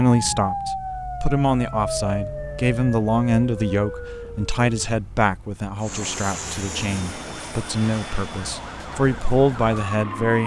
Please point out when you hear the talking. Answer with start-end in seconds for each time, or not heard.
0.0-10.4.